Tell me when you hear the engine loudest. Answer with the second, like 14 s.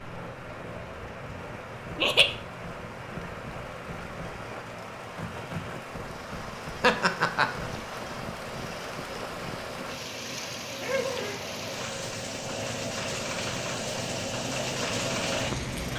15 s.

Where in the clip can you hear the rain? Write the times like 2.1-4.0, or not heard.
0.0-15.9.